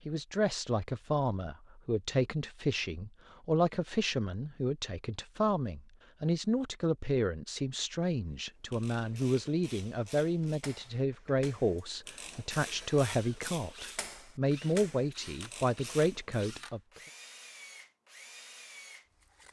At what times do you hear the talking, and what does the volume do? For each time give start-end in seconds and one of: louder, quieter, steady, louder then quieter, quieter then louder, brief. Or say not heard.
0.1-17.0 steady.